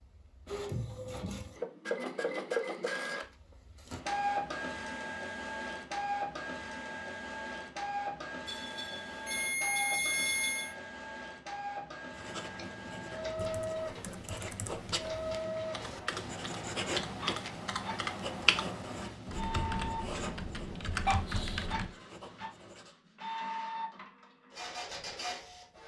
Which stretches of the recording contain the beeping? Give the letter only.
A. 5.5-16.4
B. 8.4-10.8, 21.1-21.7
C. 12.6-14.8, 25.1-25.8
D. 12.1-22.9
B.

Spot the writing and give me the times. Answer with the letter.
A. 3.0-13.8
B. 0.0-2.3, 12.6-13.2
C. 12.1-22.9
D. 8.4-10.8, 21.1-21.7
C.